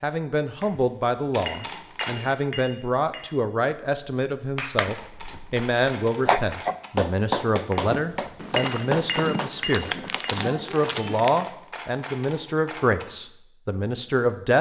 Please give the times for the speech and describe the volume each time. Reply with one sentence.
The speech can be heard from 0.0 to 14.5 s, at a steady volume.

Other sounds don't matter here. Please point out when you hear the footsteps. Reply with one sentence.
The footsteps can be heard from 7.8 to 11.4 s.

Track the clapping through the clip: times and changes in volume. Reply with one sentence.
The clapping can be heard from 4.5 to 11.6 s, getting louder then quieter.